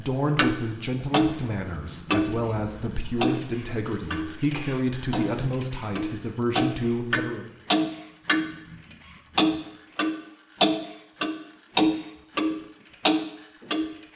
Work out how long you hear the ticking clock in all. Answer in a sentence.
The ticking clock can be heard for 13 seconds in total.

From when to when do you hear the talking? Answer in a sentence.
You can hear the talking from 0.0 to 7.5 s.